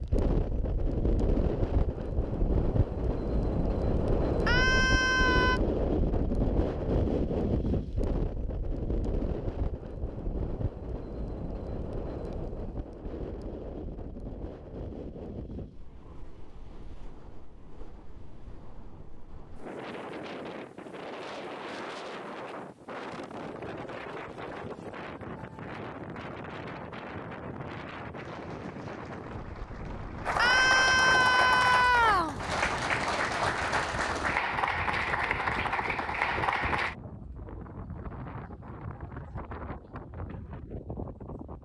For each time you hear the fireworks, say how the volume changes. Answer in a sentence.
The fireworks can't be heard in this clip.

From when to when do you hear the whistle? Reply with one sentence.
You can't hear the whistle here.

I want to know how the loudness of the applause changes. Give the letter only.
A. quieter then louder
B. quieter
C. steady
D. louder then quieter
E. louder
E.